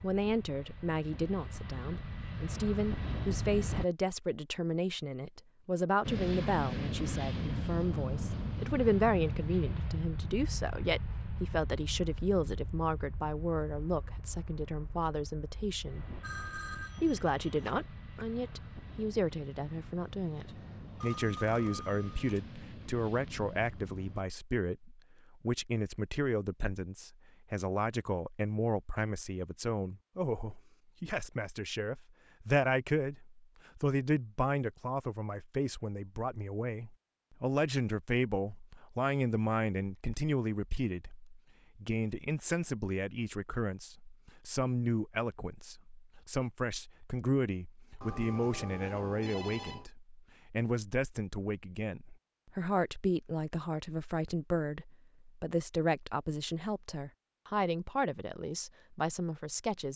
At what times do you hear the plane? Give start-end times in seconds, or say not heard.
0.0-3.9, 6.0-24.2.